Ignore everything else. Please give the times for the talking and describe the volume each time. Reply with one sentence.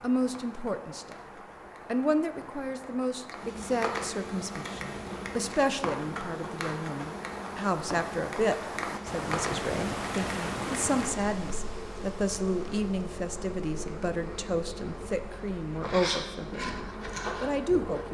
You can hear the talking briefly from 0.0 to 1.2 s; and from 1.9 to 18.0 s, at a steady volume.